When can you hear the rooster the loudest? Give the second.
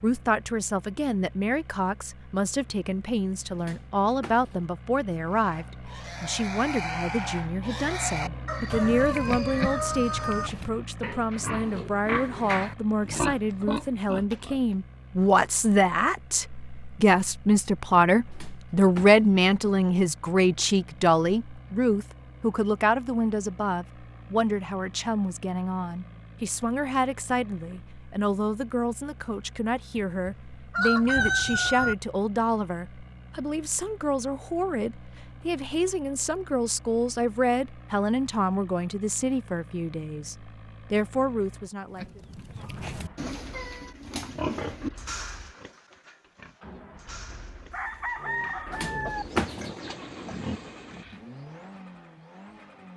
31 s.